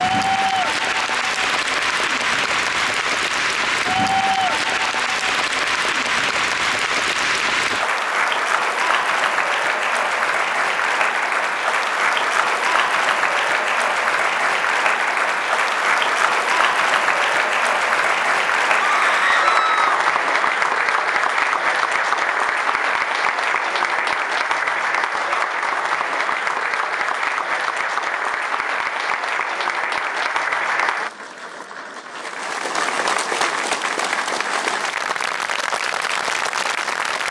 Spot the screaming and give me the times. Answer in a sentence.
You can hear the screaming from 18.8 to 19.9 s.